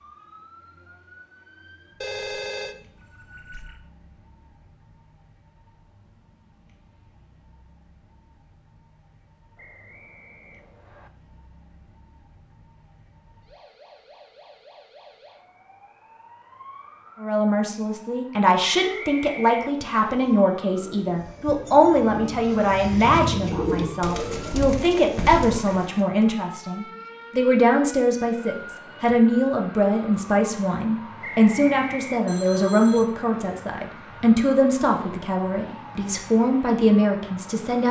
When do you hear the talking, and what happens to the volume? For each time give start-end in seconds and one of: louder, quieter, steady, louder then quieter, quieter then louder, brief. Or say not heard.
17.2-37.8 steady.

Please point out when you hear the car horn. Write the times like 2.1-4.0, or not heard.
not heard.